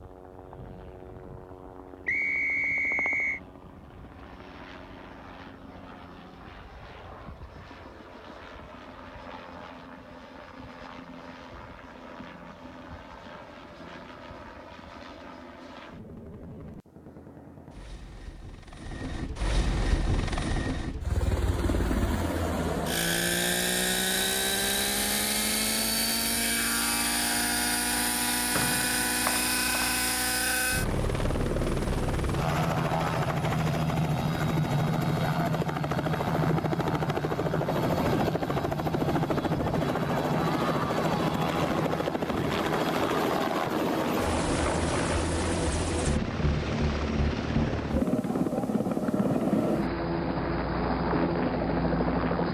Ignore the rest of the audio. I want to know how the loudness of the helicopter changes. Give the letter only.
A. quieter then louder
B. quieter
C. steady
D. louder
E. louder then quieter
D.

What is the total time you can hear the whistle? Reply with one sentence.
You can hear the whistle for 3 seconds altogether.